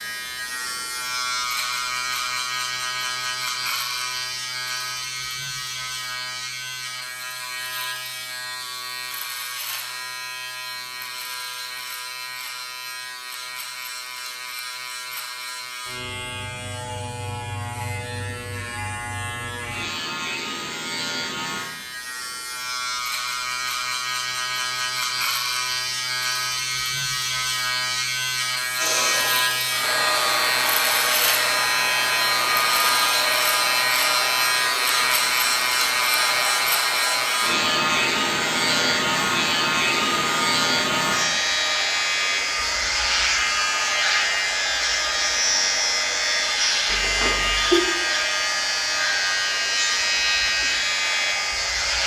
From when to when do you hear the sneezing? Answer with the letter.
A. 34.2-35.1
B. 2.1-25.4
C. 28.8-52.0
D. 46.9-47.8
D.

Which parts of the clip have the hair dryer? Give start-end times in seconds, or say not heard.
28.8-52.0.